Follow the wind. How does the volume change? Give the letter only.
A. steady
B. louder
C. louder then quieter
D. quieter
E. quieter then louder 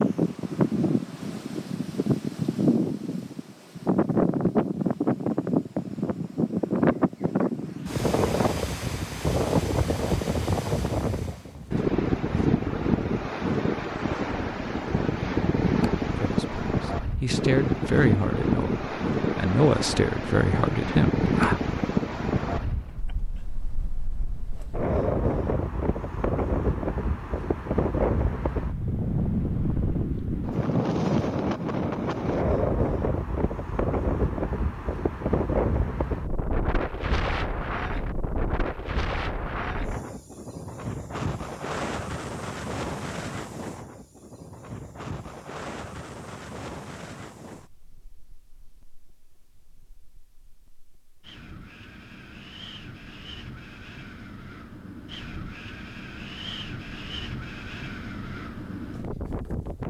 D.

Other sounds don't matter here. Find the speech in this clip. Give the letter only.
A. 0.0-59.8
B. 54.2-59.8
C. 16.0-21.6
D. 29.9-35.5
C.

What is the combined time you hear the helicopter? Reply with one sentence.
You can't hear the helicopter here.